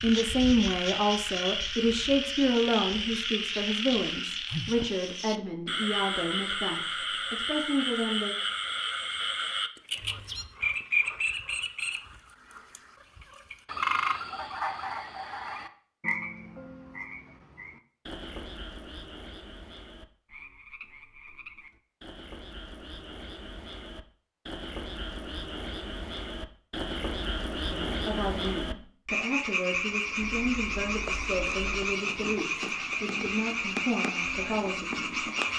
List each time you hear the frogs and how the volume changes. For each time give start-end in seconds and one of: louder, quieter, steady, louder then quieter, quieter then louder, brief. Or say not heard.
0.0-35.5 quieter then louder.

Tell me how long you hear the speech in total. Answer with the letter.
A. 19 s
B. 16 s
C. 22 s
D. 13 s
B.